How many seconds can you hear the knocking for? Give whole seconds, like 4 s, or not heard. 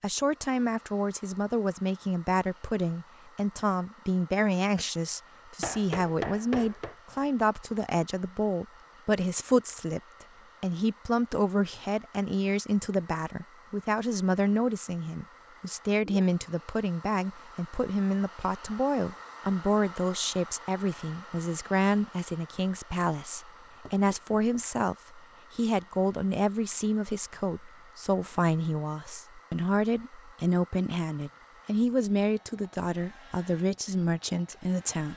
2 s.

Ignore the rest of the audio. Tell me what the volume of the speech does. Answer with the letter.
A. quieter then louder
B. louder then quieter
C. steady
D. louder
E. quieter
C.